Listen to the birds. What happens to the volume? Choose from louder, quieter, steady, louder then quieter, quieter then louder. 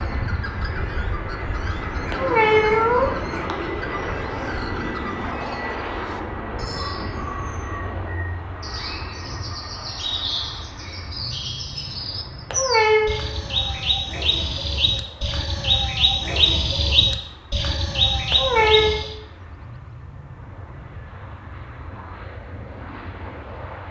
louder.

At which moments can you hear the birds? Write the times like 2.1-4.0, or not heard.
0.0-19.1.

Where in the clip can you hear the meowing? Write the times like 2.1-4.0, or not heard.
2.1-3.5, 12.5-13.2, 18.3-18.9.